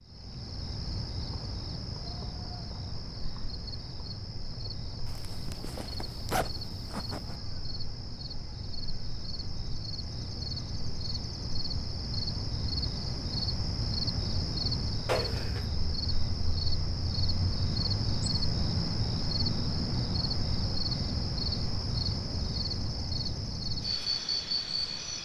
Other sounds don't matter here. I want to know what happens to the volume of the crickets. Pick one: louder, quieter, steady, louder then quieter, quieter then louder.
louder.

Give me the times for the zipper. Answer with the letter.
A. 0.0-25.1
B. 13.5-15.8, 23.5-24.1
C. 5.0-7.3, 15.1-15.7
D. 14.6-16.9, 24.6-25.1
C.